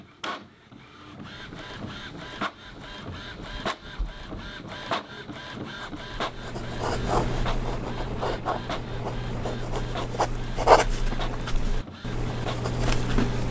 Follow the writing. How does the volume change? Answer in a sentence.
The volume of the writing goes up, then down.